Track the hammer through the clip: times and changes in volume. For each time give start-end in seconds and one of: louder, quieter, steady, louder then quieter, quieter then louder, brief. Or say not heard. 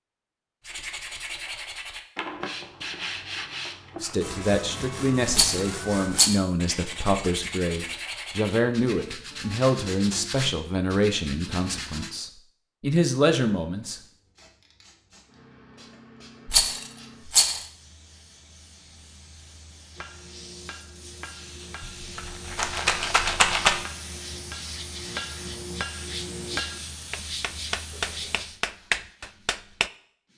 19.9-29.9 louder.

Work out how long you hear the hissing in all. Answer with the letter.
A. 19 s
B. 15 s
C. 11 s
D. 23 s
B.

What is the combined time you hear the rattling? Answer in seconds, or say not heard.
4 s.